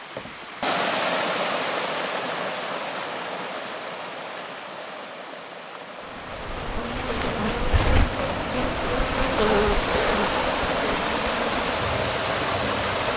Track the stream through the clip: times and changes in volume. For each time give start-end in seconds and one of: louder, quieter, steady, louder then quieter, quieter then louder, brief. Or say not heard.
0.0-13.1 quieter then louder.